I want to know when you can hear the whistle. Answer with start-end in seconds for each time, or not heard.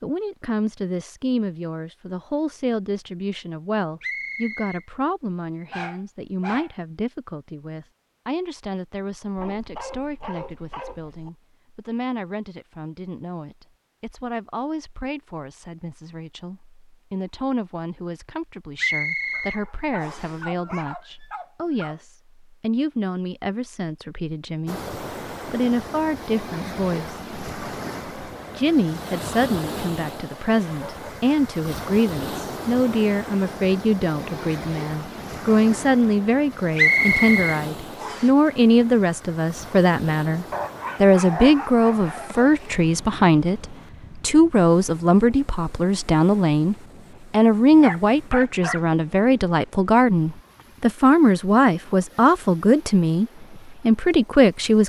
4.0-4.8, 18.8-20.4, 36.8-38.3.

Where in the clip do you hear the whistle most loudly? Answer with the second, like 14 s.
37 s.